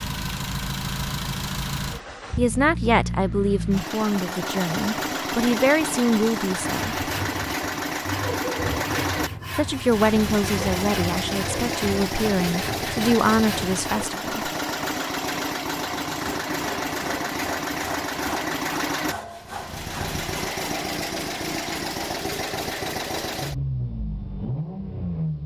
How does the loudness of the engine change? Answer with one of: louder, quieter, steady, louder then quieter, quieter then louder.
steady.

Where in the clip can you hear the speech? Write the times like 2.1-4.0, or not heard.
2.4-7.0, 9.6-14.5.